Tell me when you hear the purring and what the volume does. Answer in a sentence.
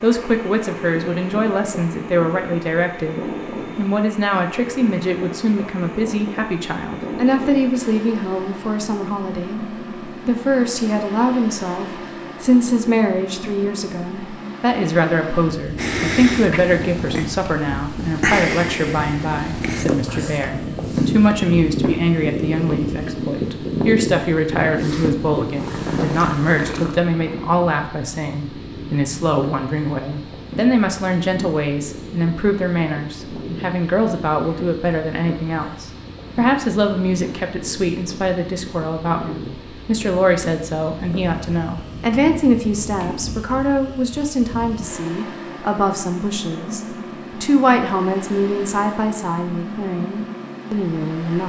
You can hear the purring from 15.8 to 43.4 s, getting quieter.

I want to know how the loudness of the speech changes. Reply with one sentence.
The volume of the speech stays about the same.